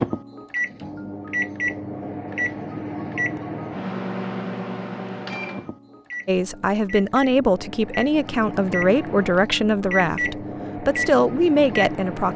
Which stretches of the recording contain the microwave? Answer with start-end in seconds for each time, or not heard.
0.0-12.3.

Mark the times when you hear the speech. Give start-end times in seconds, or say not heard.
6.2-12.3.